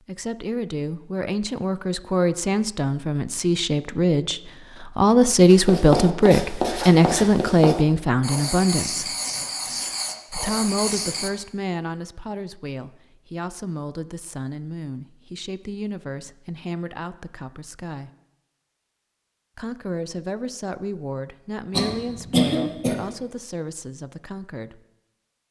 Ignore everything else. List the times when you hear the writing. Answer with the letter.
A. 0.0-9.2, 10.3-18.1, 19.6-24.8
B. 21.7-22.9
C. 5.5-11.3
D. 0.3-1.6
C.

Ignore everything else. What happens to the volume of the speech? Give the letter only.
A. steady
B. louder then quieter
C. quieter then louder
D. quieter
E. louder
B.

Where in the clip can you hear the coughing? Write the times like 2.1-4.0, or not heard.
21.7-22.9.